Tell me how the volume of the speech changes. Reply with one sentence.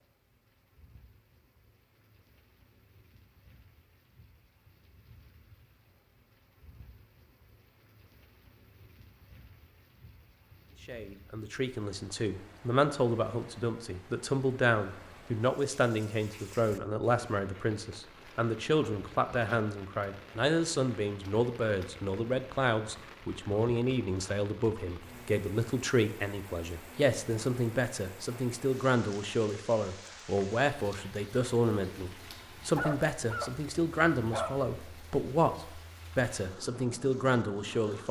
The loudness of the speech stays about the same.